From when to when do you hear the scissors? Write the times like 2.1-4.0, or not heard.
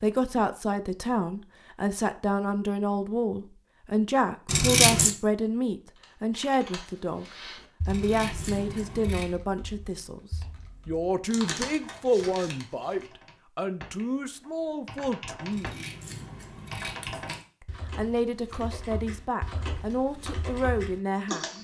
4.5-5.2, 7.8-9.2, 15.5-17.4.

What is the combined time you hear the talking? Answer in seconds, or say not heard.
19 s.